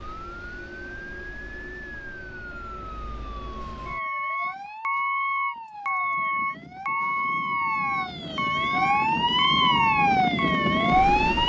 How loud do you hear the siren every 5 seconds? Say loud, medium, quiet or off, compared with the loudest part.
quiet, medium, loud.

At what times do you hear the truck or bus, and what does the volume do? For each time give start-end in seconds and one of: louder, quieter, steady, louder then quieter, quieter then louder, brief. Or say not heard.
0.0-11.4 louder.